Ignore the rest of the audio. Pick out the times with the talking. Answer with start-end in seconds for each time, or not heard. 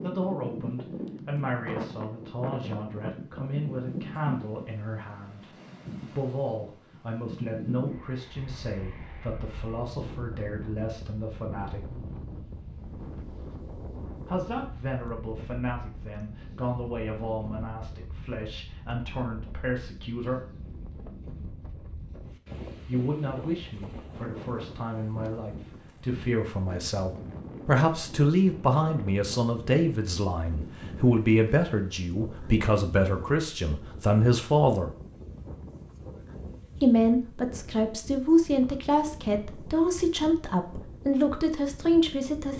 0.0-5.5, 6.1-11.9, 14.2-20.4, 22.9-34.9, 36.8-42.5.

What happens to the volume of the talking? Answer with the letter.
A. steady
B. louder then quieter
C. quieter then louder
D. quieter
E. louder
E.